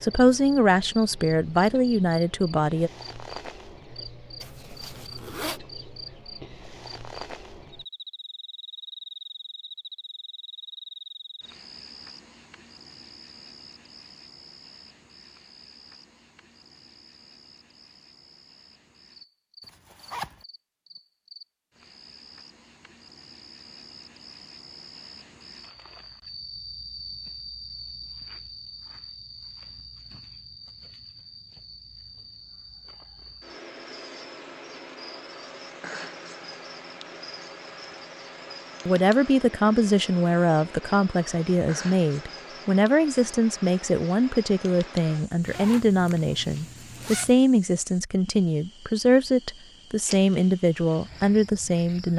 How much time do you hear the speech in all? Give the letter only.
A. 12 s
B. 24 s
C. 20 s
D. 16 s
D.